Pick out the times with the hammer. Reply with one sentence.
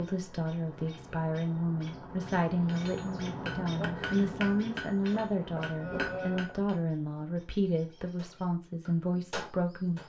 You can hear the hammer from 2.6 to 6.8 s and from 8.2 to 10.0 s.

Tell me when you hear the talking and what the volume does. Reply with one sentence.
The talking can be heard from 0.0 to 10.0 s, at a steady volume.